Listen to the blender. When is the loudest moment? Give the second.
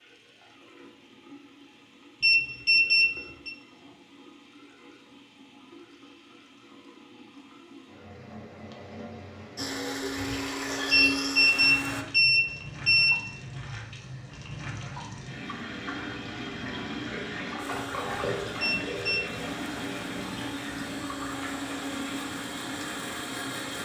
11 s.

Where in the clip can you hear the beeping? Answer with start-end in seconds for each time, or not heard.
2.2-3.5, 10.9-13.2, 18.6-19.2.